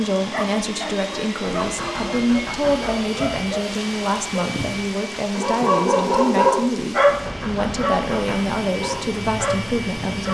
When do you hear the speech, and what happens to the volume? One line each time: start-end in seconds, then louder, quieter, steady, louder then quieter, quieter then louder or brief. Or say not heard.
0.0-10.2 steady.